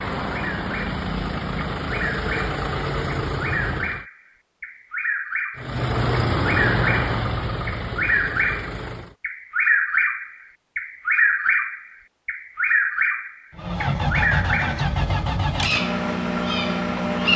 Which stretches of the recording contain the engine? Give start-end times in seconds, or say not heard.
0.0-4.0, 5.5-9.2, 13.5-17.3.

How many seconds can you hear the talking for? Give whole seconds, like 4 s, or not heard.
not heard.